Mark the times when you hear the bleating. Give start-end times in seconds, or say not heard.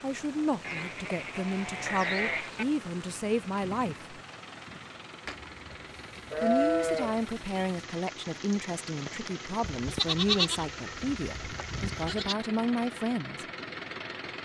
0.6-2.6, 5.2-7.8, 9.6-12.3.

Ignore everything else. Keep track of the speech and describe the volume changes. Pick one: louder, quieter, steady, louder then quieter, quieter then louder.
steady.